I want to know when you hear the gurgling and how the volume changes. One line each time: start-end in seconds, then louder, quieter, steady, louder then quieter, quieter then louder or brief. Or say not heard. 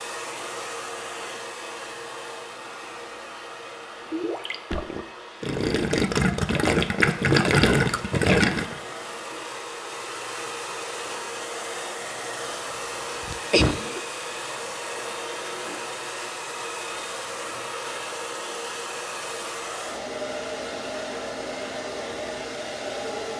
4.1-8.8 louder.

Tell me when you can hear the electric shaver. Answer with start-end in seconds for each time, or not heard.
not heard.